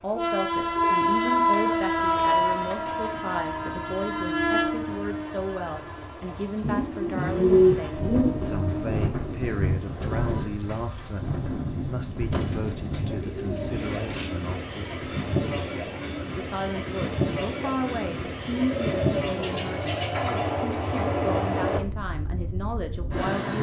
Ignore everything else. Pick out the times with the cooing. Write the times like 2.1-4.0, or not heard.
0.8-3.2, 6.6-8.3, 12.3-14.2, 18.5-20.5.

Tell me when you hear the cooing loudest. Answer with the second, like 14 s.
8 s.